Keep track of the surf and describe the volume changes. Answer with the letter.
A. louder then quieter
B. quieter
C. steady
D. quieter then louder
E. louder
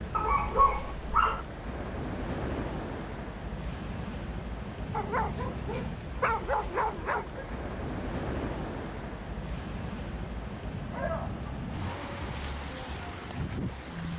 C.